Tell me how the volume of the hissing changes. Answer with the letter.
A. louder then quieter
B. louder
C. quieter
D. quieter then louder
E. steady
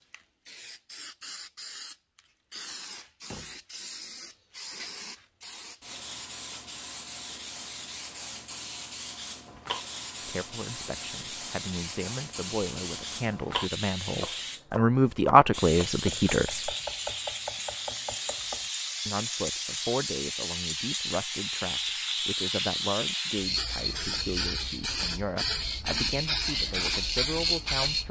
B.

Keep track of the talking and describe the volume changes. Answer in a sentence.
The volume of the talking goes up, then down.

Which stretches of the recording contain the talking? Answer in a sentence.
The talking can be heard from 10.2 to 16.7 s and from 19.1 to 28.0 s.